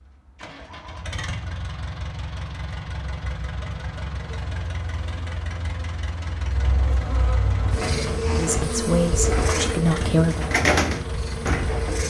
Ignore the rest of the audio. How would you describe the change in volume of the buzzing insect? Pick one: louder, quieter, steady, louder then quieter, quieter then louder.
louder then quieter.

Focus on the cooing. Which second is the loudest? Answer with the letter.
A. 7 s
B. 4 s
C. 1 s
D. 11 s
D.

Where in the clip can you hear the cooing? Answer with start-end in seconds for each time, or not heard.
7.5-12.0.